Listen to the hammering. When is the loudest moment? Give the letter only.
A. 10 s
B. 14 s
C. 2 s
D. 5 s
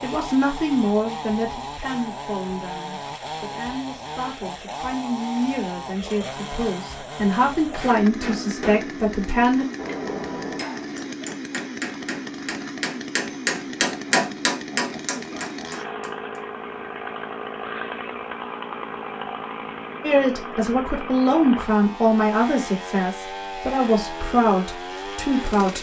B.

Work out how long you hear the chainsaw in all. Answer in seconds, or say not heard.
26 s.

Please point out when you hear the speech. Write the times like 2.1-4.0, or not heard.
0.0-9.7, 20.0-25.7.